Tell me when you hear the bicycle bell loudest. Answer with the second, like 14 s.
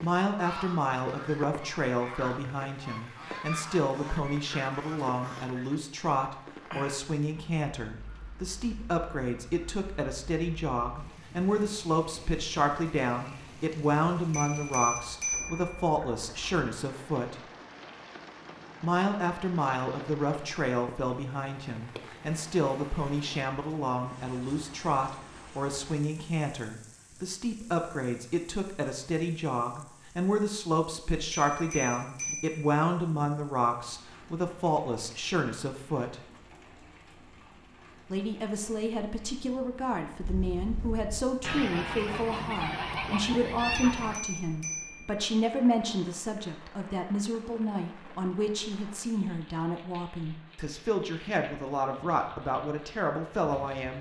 15 s.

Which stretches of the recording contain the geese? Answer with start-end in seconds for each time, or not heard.
0.3-5.8, 40.1-44.2.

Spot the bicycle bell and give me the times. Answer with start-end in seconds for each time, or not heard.
14.3-15.8, 31.3-32.6, 44.0-45.2.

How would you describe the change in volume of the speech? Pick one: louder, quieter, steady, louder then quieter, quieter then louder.
steady.